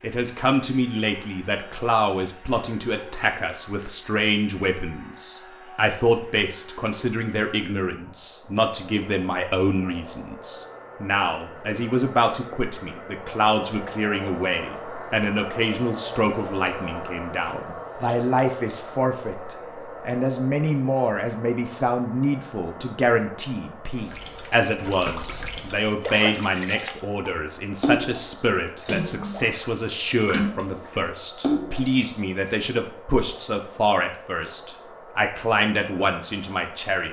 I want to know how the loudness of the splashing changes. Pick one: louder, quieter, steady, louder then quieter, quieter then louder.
louder.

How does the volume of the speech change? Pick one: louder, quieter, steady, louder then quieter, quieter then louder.
steady.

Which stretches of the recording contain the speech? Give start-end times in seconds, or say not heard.
0.0-37.0.